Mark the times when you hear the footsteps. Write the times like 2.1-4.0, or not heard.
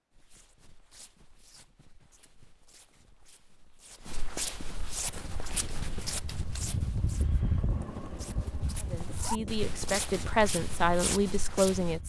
0.1-12.0.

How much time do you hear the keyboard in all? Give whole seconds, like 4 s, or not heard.
not heard.